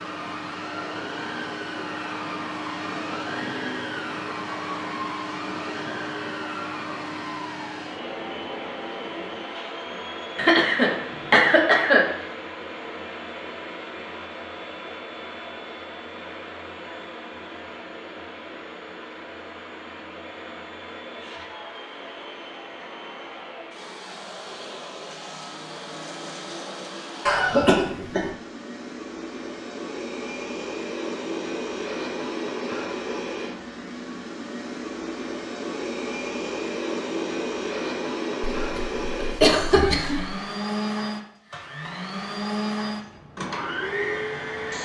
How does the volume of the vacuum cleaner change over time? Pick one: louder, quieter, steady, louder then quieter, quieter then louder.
quieter then louder.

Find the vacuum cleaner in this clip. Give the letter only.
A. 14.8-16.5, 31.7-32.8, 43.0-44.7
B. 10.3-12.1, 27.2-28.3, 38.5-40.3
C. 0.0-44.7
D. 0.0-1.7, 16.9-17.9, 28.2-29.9
C.